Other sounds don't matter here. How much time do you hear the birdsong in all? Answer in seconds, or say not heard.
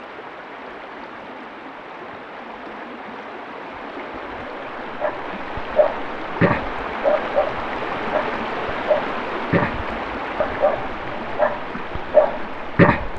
not heard.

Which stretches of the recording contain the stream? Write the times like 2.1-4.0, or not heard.
0.0-13.1.